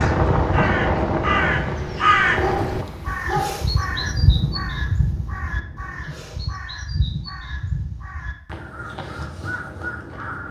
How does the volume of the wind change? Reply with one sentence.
The volume of the wind goes down.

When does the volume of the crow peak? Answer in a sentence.
The volume of the crow peaks at 2 seconds.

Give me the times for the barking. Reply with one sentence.
The barking can be heard from 2.4 to 3.8 s.